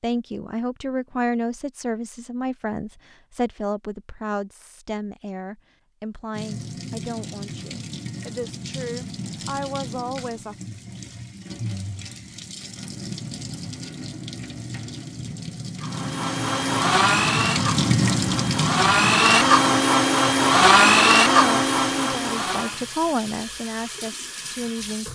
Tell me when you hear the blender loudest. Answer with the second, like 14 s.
21 s.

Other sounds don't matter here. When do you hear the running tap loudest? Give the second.
18 s.